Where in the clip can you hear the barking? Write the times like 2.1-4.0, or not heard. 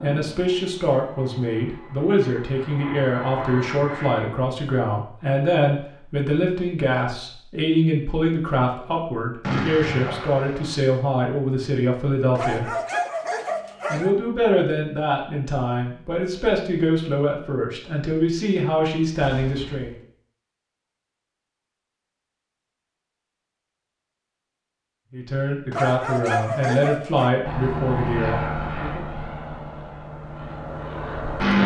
12.3-14.2, 25.7-27.3.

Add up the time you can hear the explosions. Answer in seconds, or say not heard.
2 s.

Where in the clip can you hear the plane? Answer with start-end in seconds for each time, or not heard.
0.0-4.3, 27.4-31.6.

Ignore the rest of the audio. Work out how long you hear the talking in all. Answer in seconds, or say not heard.
23 s.